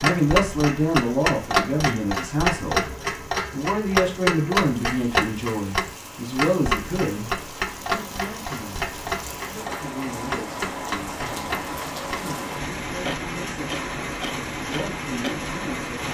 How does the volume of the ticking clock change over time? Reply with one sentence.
The volume of the ticking clock goes down.